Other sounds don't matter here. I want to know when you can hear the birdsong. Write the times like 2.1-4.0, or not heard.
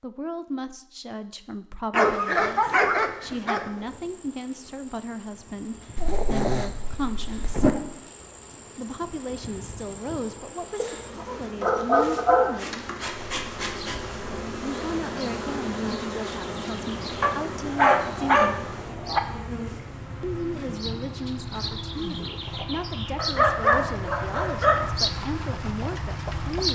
13.2-26.6.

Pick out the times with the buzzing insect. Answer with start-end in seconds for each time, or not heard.
3.0-26.6.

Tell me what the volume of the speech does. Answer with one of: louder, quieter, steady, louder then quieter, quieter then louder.
steady.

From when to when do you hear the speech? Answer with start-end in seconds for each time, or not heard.
0.0-7.8, 8.8-12.9, 14.6-18.7, 20.2-26.6.